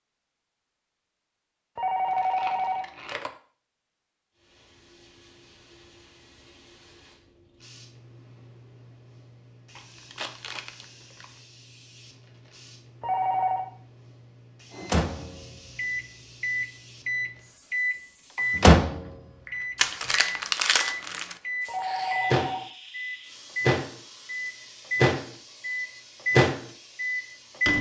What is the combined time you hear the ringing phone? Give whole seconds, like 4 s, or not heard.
3 s.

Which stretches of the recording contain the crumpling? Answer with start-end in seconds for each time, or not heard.
2.0-3.2, 9.8-11.2, 19.8-21.4.